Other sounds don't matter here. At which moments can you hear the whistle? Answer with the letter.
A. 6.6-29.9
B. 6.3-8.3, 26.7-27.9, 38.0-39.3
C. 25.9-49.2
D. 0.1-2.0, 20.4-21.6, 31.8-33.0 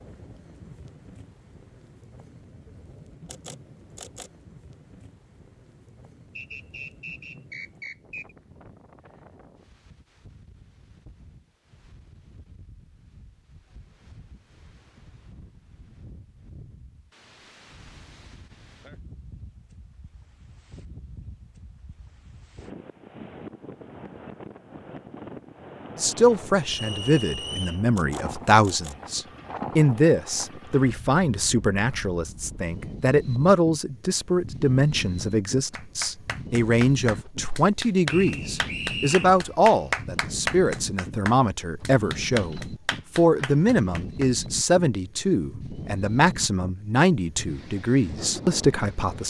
B.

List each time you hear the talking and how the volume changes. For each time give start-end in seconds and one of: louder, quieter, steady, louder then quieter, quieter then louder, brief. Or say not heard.
25.9-49.2 steady.